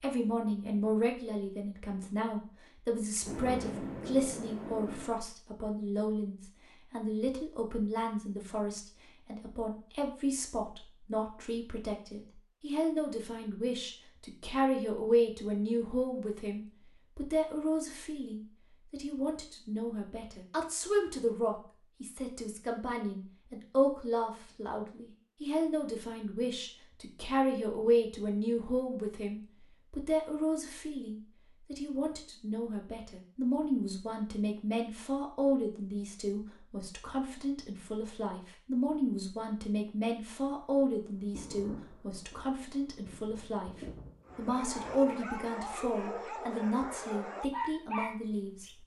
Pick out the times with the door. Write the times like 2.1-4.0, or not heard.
not heard.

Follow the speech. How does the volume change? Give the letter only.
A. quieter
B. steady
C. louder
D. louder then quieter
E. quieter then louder
B.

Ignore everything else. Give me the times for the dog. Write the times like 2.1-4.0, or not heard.
44.2-48.8.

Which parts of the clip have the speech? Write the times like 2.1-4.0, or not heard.
0.0-48.8.